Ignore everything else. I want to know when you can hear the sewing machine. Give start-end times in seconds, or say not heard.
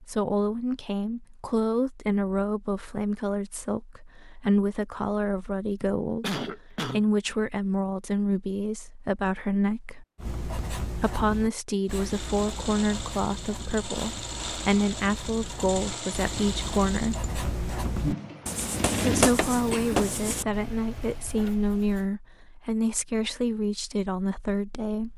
11.9-21.6.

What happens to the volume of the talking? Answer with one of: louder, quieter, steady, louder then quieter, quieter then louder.
steady.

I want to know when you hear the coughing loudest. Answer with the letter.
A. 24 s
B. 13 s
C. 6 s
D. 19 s
C.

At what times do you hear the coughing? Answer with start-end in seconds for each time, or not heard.
5.8-7.0, 19.7-20.4.